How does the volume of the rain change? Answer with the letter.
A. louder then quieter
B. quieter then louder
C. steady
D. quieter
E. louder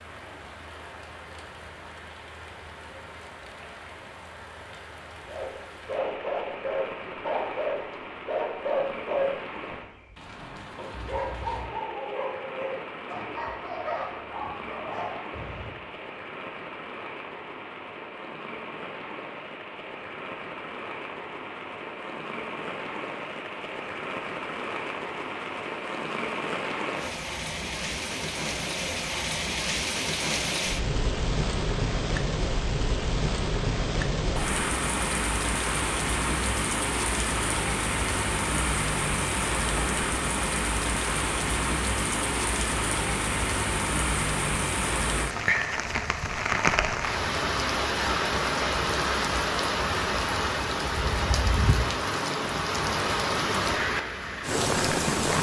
E.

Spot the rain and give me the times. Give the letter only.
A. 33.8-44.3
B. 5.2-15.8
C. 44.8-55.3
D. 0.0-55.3
D.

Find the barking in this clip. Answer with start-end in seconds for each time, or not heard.
5.2-15.8.